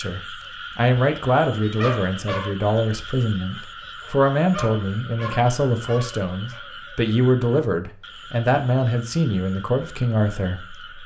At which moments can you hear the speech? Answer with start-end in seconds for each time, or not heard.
0.0-11.0.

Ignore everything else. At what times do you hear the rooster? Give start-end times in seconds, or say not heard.
not heard.